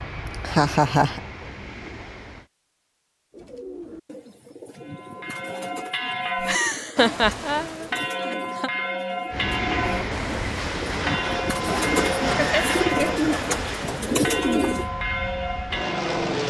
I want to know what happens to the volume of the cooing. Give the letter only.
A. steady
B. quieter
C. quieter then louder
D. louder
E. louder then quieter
D.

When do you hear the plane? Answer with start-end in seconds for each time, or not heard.
0.0-2.5, 9.3-16.4.